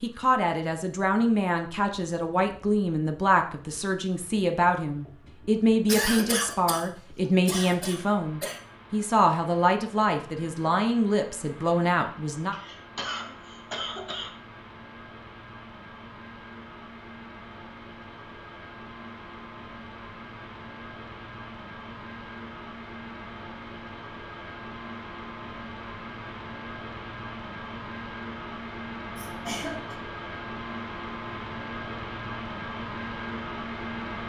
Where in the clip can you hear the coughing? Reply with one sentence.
You can hear the coughing from 5.8 to 6.8 s, from 7.5 to 8.6 s, from 12.5 to 14.3 s and from 29.1 to 29.9 s.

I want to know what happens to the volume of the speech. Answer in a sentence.
The loudness of the speech stays about the same.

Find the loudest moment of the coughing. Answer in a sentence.
The loudest moment of the coughing is at 6 seconds.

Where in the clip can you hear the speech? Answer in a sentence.
The speech can be heard from 0.0 to 12.6 s.